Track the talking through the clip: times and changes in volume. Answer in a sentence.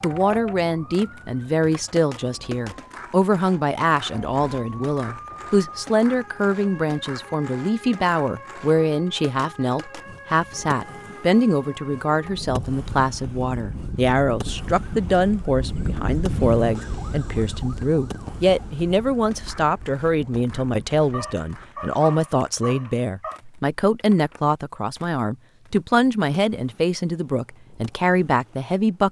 The talking can be heard from 0.0 to 29.0 s, at a steady volume.